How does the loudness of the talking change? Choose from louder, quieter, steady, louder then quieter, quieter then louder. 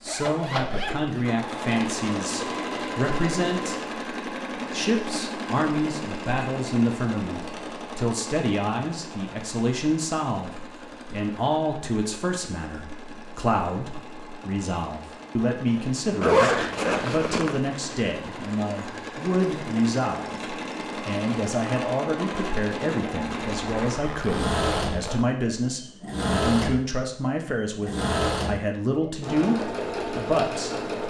steady.